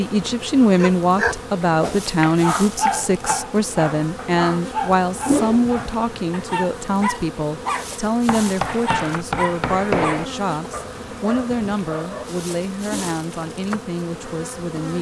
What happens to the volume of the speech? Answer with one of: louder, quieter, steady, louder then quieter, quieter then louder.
quieter.